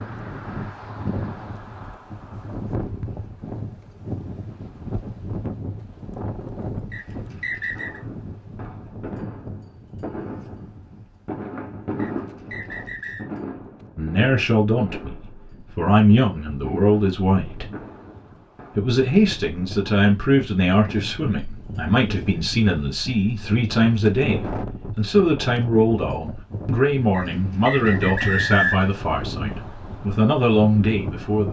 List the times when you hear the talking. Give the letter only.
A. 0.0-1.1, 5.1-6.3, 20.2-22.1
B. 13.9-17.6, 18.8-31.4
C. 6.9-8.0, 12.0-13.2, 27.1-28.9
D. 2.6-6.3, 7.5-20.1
B.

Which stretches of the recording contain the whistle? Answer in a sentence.
You can hear the whistle from 6.9 to 8.0 s, from 12.0 to 13.2 s and from 27.1 to 28.9 s.